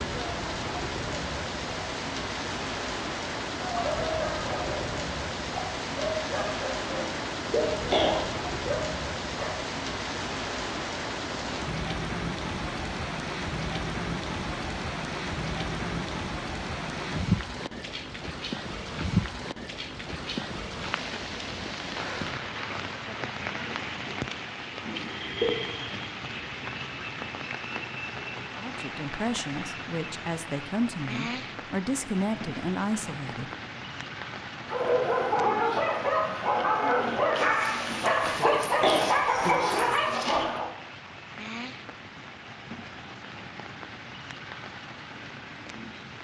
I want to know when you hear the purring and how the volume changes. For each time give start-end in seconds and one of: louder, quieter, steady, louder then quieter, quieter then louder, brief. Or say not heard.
not heard.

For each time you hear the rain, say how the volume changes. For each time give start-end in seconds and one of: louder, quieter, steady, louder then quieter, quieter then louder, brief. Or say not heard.
0.0-46.1 quieter.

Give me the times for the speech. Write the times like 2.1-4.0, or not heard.
28.6-33.5.